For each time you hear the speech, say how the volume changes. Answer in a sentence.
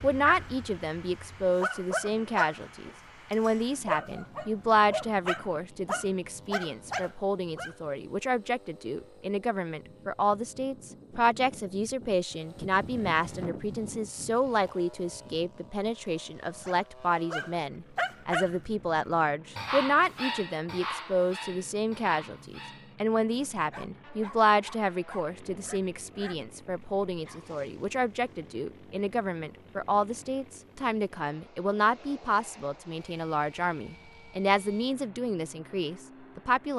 The speech can be heard from 0.0 to 36.7 s, at a steady volume.